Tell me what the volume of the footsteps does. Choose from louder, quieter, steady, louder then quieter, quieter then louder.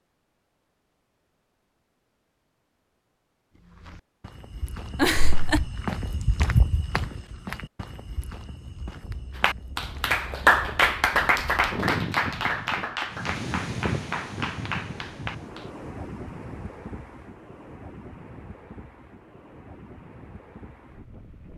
louder then quieter.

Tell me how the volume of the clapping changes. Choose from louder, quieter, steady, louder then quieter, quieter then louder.
quieter.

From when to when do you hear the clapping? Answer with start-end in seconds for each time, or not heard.
9.3-15.7.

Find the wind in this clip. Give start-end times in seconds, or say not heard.
8.6-21.5.